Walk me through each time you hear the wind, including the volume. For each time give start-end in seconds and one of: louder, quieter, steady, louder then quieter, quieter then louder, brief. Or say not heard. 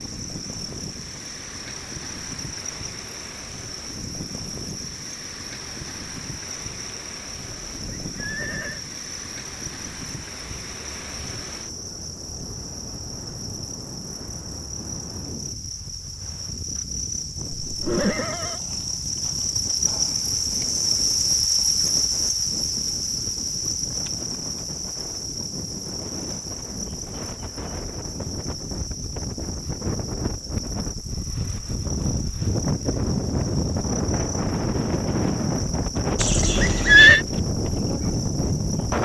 0.0-38.9 louder.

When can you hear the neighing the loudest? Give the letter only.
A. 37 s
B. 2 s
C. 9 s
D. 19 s
A.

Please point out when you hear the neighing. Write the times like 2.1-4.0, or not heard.
7.7-8.8, 17.6-18.6, 36.1-37.2.